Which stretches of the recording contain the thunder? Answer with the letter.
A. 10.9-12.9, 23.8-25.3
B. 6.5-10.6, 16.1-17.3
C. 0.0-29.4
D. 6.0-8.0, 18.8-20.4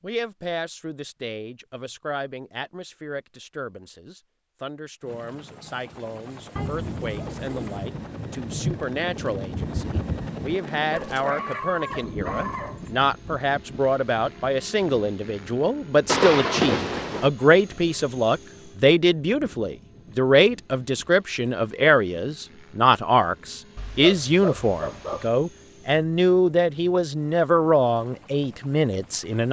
B.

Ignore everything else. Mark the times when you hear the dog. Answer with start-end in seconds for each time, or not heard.
10.9-12.9, 23.8-25.3.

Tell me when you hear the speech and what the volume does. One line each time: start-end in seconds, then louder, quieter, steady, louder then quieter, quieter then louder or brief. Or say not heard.
0.0-29.4 louder.